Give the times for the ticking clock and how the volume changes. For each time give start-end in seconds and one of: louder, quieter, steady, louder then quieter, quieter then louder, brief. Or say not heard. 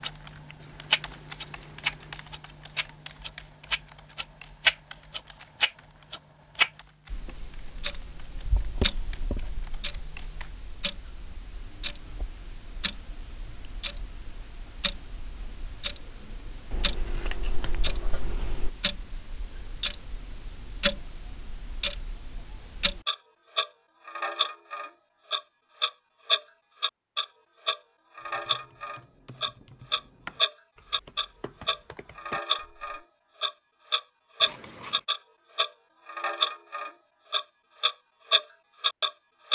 0.0-39.5 quieter then louder.